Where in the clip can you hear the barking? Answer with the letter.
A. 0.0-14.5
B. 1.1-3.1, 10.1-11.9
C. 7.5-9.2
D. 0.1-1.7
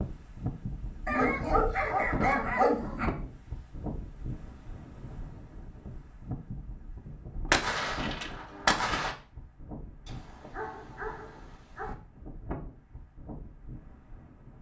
B.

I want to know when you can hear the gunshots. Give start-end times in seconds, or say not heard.
7.5-9.2.